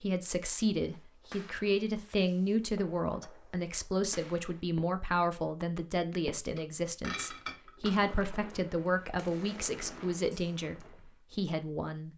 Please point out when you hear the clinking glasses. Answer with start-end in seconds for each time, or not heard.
6.5-8.1.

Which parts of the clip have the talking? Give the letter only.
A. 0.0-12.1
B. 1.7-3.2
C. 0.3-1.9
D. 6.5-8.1
A.